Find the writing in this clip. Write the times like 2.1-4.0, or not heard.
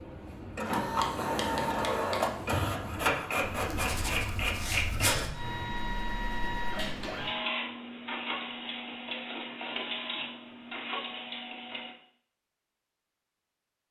0.9-7.0.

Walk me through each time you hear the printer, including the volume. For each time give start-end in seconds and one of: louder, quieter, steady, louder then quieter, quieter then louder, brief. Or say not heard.
0.0-11.9 quieter.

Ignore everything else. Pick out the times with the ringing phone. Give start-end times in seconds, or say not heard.
not heard.